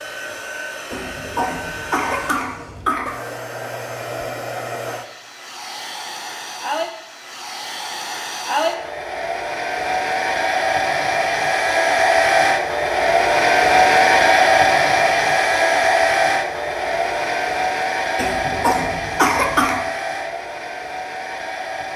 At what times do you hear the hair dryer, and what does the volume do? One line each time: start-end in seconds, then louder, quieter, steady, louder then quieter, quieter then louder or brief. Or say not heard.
0.0-21.9 louder then quieter.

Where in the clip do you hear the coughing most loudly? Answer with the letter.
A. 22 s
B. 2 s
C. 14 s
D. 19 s
D.